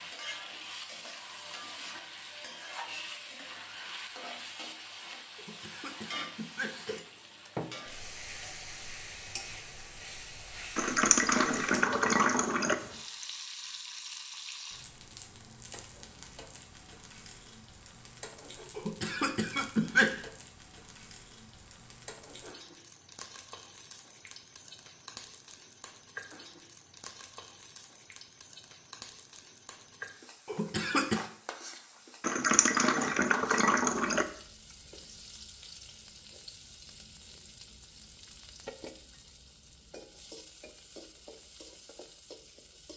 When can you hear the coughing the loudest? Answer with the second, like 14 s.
20 s.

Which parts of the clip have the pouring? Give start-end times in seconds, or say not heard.
10.8-12.8, 32.2-34.2.